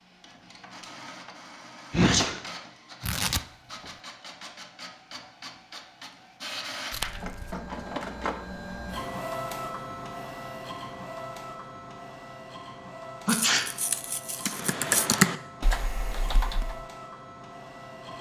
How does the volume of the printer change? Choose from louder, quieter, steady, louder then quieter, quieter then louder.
louder then quieter.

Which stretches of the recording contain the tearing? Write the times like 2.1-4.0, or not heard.
3.0-3.9, 6.9-7.6, 13.2-15.1.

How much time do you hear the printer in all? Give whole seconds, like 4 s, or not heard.
18 s.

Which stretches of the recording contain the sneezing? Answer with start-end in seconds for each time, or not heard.
1.9-2.4, 13.2-13.7.